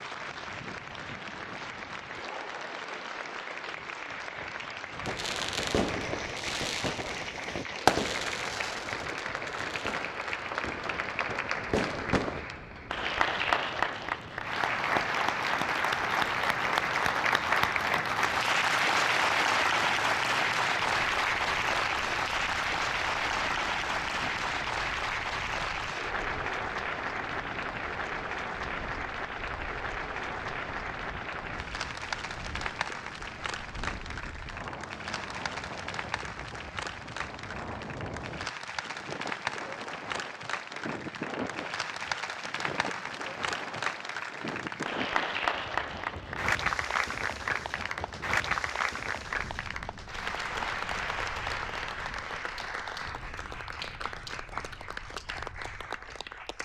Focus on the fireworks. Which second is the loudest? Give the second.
8 s.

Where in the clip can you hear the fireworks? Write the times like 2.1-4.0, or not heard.
4.9-12.4.